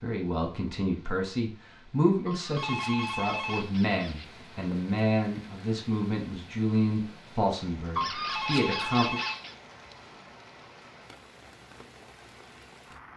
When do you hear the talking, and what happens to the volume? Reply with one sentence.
The talking can be heard from 0.0 to 9.2 s, at a steady volume.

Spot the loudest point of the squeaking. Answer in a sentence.
The volume of the squeaking peaks at 8 seconds.